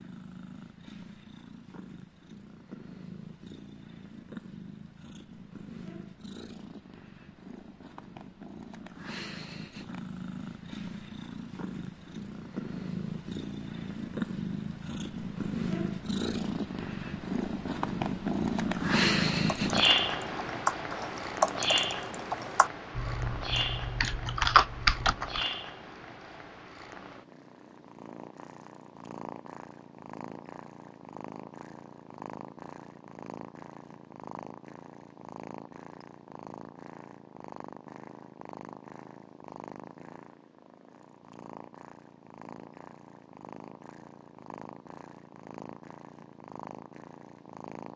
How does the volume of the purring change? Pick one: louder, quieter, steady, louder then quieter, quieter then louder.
louder then quieter.